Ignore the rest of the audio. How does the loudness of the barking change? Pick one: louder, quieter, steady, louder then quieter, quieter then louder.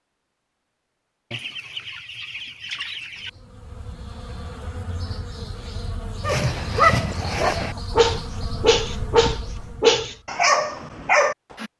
steady.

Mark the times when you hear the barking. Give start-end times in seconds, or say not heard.
6.2-11.7.